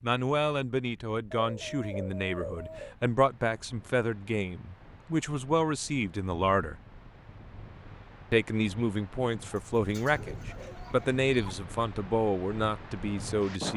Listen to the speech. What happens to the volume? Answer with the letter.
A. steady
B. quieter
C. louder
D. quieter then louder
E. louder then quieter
A.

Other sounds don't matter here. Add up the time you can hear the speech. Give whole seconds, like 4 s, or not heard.
12 s.